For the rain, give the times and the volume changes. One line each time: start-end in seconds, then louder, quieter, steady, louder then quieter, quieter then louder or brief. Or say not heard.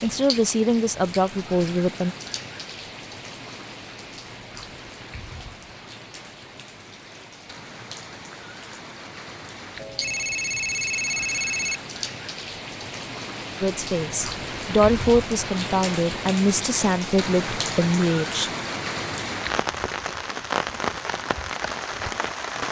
0.0-22.6 louder.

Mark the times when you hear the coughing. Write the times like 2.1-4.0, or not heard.
not heard.